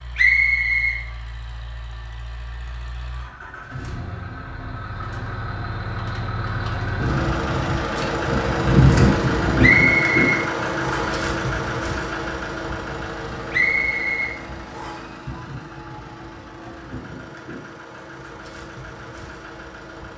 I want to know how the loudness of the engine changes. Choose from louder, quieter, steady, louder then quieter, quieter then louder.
louder then quieter.